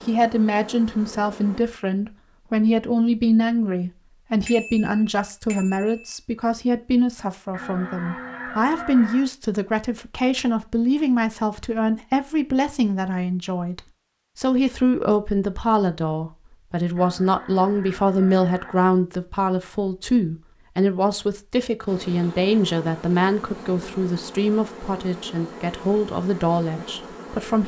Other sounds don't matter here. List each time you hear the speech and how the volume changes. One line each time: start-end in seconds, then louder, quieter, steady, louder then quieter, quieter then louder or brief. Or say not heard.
0.1-27.6 steady.